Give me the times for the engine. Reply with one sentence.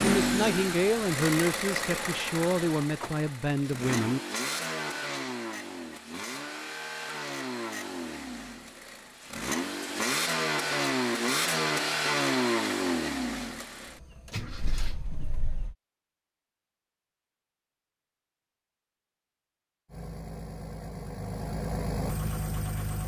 You can hear the engine from 0.0 to 15.8 s and from 19.9 to 23.0 s.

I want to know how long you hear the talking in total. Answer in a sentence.
The talking can be heard for 4 seconds in total.